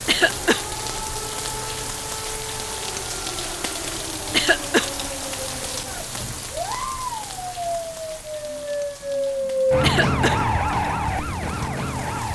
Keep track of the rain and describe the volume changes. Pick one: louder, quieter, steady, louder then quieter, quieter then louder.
quieter.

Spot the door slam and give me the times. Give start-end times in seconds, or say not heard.
not heard.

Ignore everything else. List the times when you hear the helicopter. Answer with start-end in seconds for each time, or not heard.
not heard.